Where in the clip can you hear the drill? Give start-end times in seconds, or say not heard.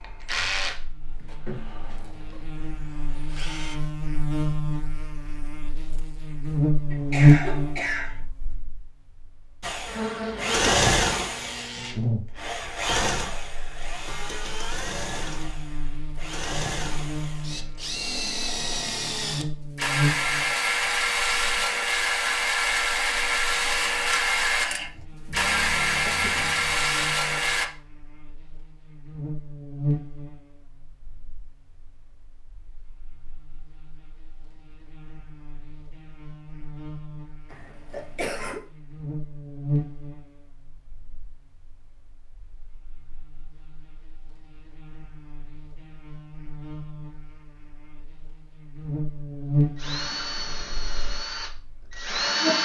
0.0-3.8, 9.6-27.7, 49.8-52.5.